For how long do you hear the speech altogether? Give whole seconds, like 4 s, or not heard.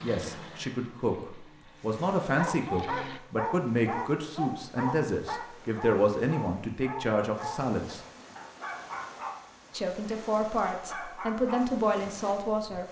11 s.